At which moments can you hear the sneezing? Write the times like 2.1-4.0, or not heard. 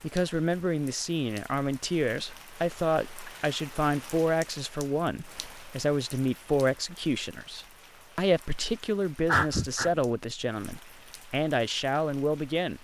9.2-9.9.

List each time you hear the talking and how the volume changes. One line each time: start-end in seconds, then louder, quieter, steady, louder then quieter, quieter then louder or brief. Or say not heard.
0.0-12.8 steady.